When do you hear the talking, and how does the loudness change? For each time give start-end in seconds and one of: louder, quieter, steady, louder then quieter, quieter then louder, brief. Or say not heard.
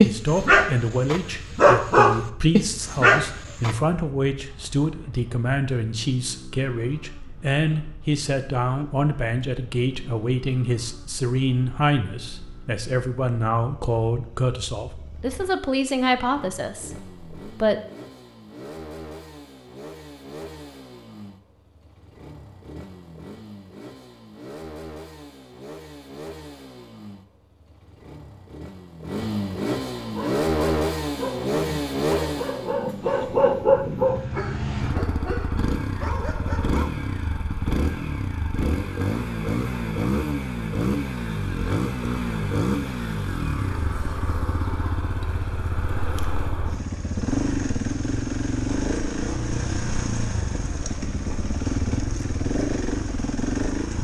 0.0-17.8 steady.